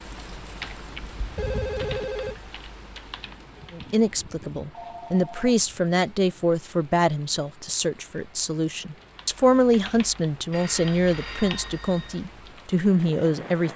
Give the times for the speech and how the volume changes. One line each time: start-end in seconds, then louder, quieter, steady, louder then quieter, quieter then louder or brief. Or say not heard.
3.7-13.7 steady.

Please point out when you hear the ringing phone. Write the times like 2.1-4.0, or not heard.
1.4-2.4, 4.7-5.5, 10.5-12.2.